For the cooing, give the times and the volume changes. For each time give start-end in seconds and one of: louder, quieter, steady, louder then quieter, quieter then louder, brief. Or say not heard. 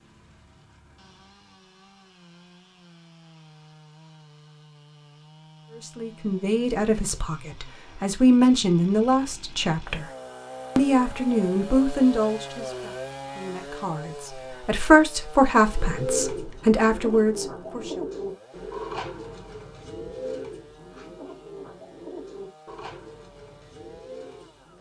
15.7-24.7 quieter.